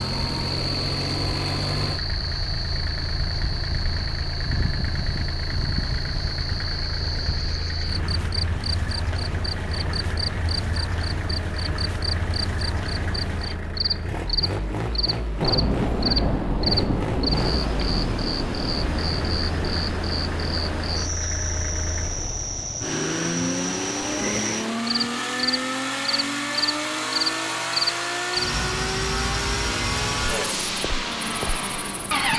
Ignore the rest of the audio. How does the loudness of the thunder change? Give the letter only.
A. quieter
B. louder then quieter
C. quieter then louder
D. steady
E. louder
A.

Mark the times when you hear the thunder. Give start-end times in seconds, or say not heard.
15.4-19.9.